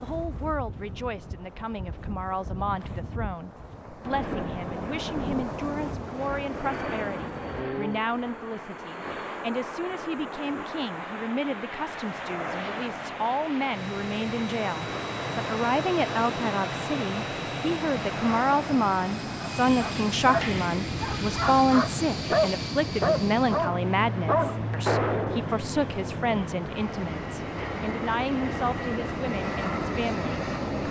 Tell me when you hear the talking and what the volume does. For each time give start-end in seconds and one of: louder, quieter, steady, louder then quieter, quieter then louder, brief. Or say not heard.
0.0-30.8 louder then quieter.